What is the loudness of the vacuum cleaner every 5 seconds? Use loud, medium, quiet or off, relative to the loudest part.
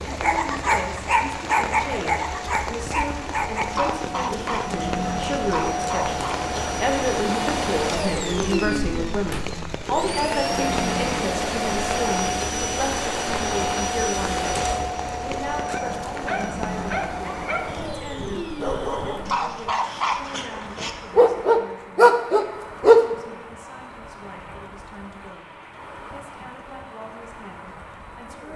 medium, loud, loud, medium, quiet, quiet.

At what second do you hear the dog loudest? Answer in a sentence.
The loudest moment of the dog is at 23 seconds.